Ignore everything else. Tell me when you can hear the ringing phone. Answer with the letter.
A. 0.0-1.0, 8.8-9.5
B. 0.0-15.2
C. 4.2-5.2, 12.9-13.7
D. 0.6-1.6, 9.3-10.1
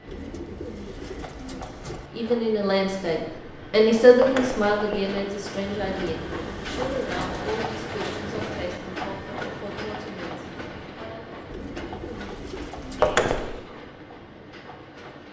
C.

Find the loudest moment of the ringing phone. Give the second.
13 s.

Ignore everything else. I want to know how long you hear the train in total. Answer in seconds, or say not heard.
15 s.